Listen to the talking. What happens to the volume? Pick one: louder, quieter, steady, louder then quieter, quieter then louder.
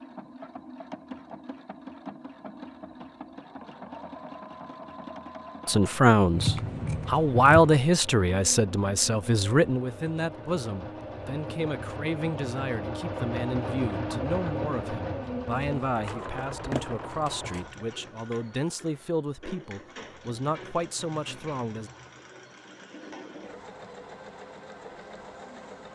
quieter.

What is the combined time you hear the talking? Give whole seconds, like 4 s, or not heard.
16 s.